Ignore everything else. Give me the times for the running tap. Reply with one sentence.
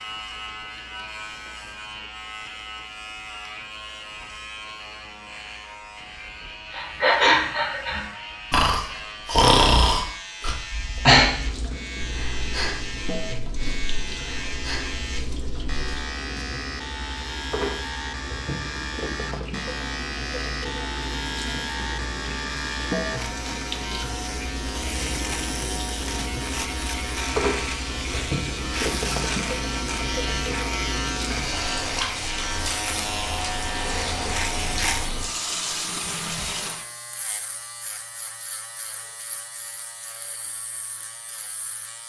You can hear the running tap from 11.2 to 36.9 s.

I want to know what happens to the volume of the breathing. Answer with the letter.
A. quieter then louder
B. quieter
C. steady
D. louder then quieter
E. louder
B.